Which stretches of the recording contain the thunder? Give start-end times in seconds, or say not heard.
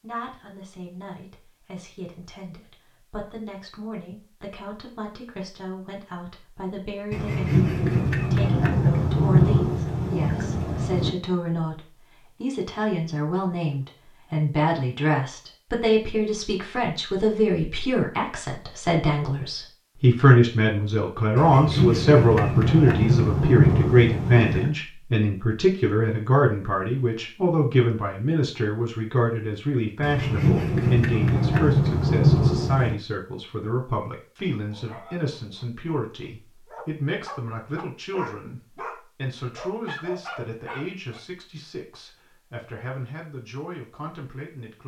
7.1-11.1, 21.4-24.8, 30.0-33.0.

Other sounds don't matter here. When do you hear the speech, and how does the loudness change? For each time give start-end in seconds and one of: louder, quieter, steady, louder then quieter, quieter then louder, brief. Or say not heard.
0.0-44.8 louder then quieter.